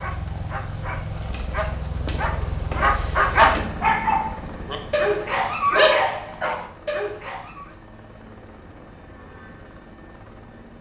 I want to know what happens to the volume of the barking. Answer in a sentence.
The loudness of the barking goes up, then down.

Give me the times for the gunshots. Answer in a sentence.
The gunshots can't be heard in this clip.